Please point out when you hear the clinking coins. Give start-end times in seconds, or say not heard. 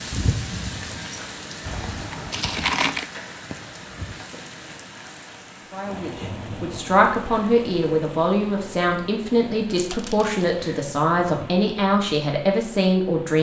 1.6-3.0, 9.8-10.9.